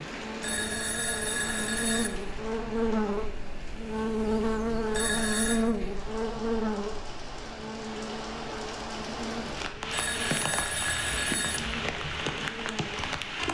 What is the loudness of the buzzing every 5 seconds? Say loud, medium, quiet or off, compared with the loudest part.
loud, loud, medium.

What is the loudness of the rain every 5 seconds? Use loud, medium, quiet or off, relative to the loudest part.
medium, medium, loud.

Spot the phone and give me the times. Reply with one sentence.
You can hear the phone from 0.4 to 2.1 s, from 4.9 to 5.6 s and from 9.9 to 11.6 s.